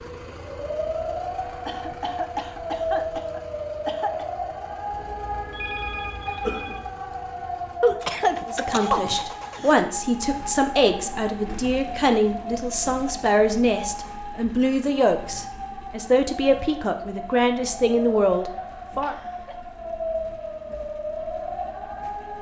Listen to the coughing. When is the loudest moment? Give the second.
8 s.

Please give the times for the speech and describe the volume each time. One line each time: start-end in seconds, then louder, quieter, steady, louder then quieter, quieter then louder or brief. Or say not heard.
8.4-19.1 steady.